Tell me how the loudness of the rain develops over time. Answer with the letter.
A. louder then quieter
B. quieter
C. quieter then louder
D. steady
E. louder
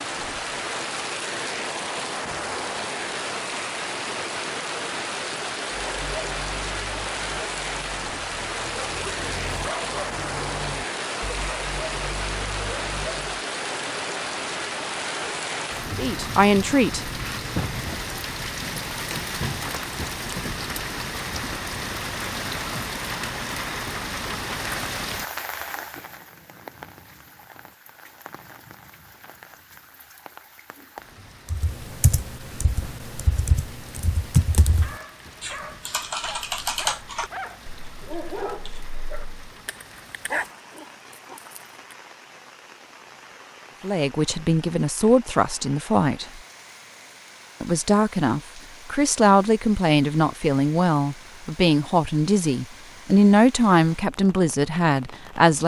B.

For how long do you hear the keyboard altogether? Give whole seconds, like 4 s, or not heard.
8 s.